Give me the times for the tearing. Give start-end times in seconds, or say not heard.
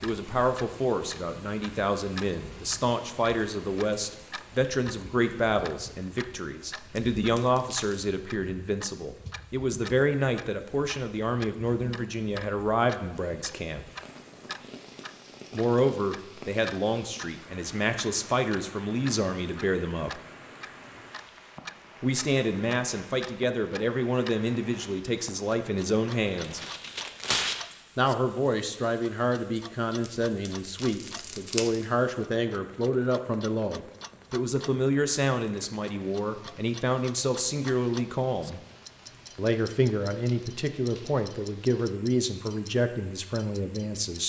7.0-8.0, 26.4-27.8, 30.1-31.8.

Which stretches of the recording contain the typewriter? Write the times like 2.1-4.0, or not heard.
not heard.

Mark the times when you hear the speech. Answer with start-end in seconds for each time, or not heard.
0.0-13.9, 15.5-20.2, 22.0-26.6, 27.9-38.6, 39.4-44.2.